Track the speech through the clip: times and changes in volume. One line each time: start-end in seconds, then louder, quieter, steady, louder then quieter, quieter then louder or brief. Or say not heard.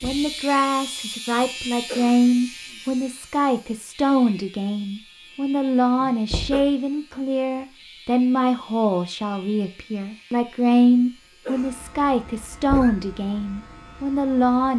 0.0-14.7 steady.